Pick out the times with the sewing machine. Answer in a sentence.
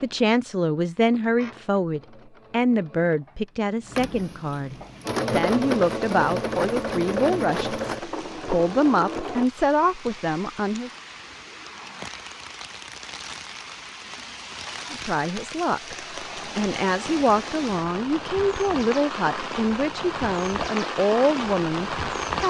The sewing machine can be heard from 0.0 to 9.5 s.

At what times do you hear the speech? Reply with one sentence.
The speech can be heard from 0.0 to 10.9 s and from 14.9 to 22.4 s.